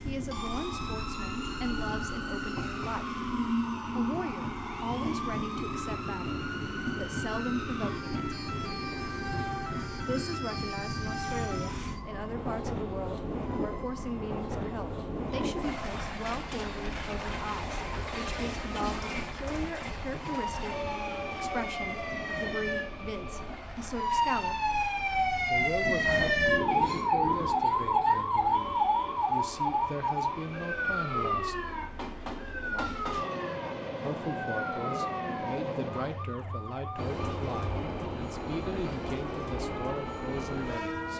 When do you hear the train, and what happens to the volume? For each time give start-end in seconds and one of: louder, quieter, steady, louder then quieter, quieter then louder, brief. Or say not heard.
0.0-41.1 quieter then louder.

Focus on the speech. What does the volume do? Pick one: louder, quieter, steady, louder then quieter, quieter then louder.
steady.